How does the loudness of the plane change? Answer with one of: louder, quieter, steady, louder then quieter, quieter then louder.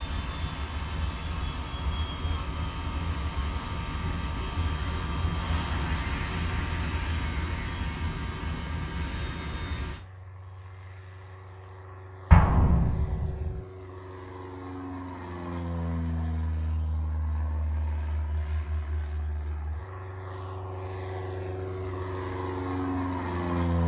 quieter then louder.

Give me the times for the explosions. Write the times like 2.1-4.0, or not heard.
12.3-13.6.